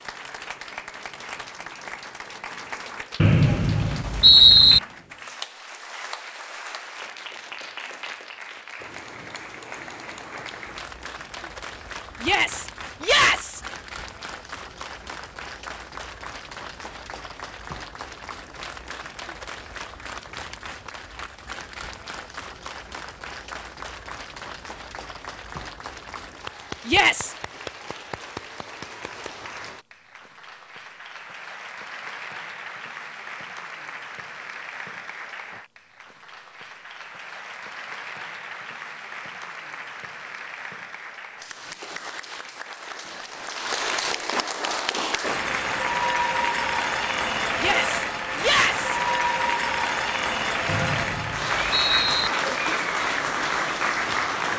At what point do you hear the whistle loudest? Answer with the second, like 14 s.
4 s.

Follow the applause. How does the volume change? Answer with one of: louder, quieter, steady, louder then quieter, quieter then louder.
louder.